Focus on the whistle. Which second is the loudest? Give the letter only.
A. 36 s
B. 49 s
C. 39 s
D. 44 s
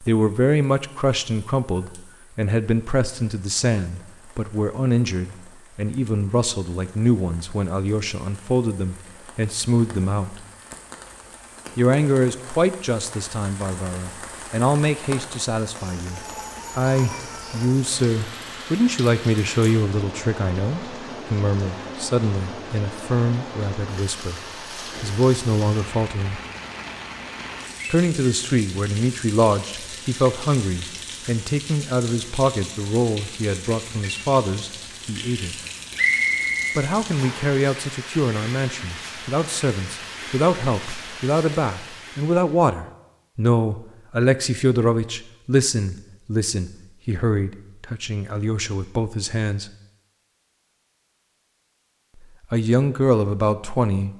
A.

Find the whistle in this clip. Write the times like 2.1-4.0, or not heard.
36.0-37.5.